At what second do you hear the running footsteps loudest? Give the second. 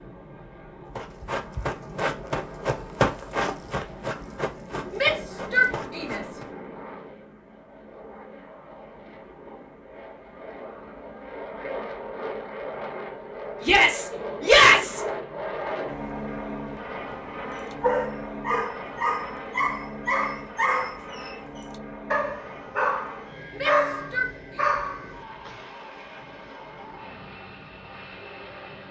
3 s.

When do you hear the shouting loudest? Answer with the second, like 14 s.
15 s.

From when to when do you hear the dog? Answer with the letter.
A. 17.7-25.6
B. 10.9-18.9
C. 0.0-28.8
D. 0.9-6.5
A.